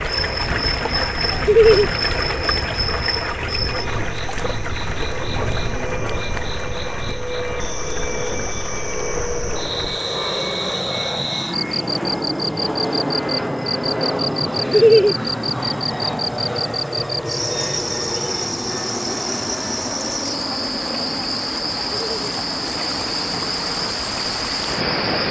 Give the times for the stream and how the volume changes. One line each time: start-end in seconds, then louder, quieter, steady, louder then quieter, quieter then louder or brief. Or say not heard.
0.0-25.2 quieter then louder.